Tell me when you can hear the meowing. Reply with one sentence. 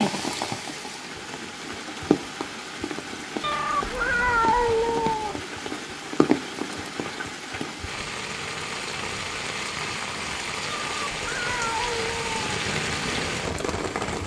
The meowing can be heard from 3.4 to 5.4 s and from 10.7 to 12.4 s.